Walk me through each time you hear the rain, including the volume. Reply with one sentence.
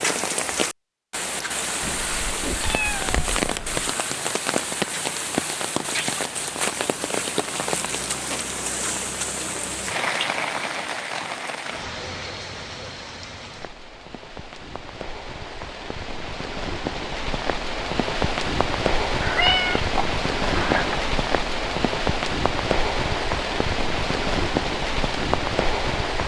The rain can be heard from 0.0 to 26.2 s, getting quieter then louder.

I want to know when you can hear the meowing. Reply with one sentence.
The meowing can be heard from 1.8 to 3.9 s and from 19.2 to 21.1 s.